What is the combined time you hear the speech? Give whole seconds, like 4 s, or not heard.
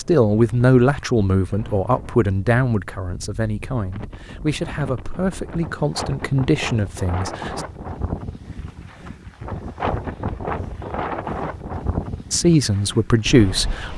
9 s.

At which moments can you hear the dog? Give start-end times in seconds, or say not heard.
not heard.